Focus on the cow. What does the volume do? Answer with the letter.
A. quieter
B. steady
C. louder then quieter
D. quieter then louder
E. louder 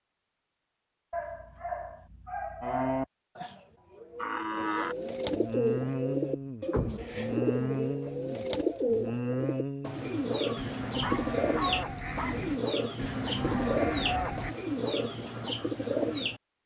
B.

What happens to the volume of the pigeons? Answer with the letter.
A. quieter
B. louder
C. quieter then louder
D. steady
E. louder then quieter
D.